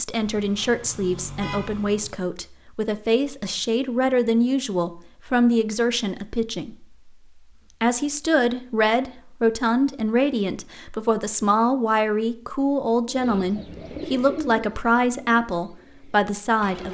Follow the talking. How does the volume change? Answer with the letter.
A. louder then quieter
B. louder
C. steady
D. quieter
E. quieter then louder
C.